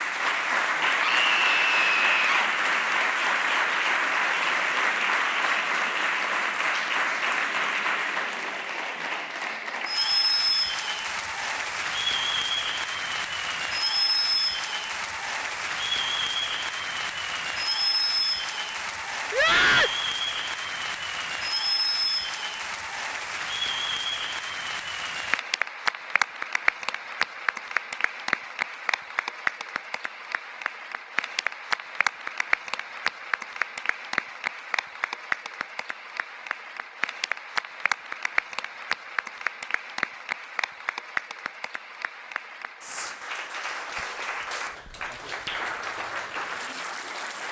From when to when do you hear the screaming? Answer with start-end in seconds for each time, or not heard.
1.0-2.5, 19.3-19.9.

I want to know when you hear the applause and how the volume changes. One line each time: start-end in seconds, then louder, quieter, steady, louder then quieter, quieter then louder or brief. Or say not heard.
0.0-47.4 quieter.